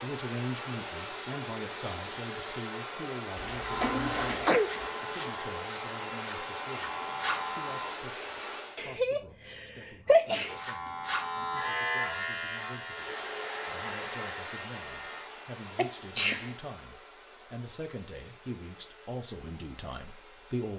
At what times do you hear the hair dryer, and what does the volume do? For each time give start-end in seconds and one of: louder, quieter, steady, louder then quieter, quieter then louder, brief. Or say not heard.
0.0-8.8 steady
12.8-20.7 quieter.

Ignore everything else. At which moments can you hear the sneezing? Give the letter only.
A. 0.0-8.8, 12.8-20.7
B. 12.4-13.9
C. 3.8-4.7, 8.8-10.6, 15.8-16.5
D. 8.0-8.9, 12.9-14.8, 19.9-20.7
C.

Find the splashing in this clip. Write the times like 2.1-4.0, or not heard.
3.4-4.9.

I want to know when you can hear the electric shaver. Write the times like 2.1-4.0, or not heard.
3.6-8.0, 10.4-15.2.